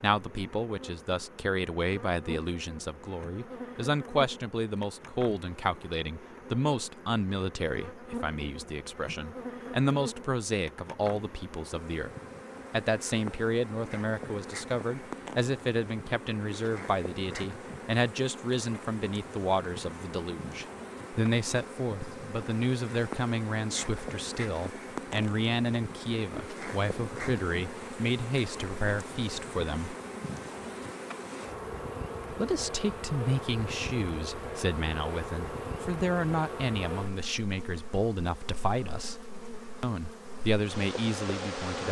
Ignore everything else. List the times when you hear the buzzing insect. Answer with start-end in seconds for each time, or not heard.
0.0-41.8.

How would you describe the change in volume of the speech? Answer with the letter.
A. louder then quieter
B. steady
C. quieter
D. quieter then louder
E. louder
B.